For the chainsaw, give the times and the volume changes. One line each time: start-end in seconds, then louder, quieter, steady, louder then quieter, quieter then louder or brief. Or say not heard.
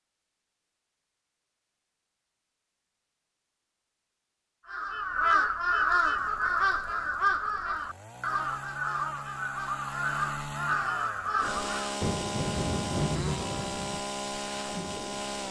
5.9-15.4 louder.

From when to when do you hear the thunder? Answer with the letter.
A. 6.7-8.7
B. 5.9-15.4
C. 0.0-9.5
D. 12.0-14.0
D.